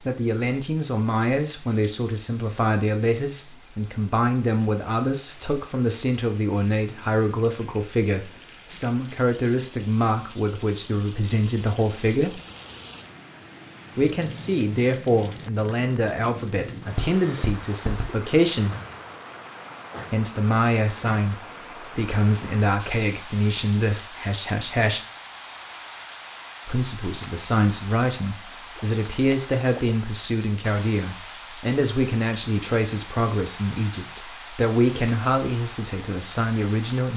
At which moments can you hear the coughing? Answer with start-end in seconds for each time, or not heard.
16.9-18.1.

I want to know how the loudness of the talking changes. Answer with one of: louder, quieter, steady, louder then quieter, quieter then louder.
steady.